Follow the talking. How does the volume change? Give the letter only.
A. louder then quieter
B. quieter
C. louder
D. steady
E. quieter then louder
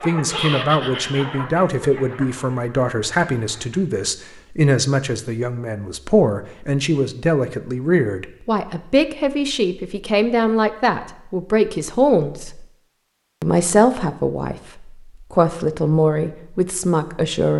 D.